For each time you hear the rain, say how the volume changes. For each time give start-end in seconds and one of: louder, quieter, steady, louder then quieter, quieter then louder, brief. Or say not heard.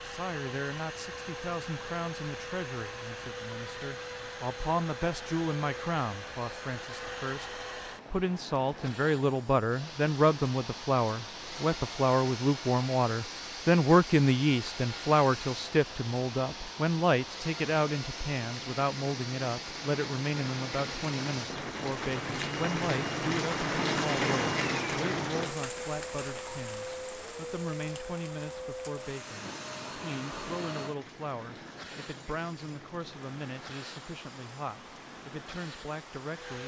0.0-36.6 louder then quieter.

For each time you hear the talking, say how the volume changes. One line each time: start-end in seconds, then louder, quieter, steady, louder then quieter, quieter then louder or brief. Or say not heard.
0.0-36.6 louder then quieter.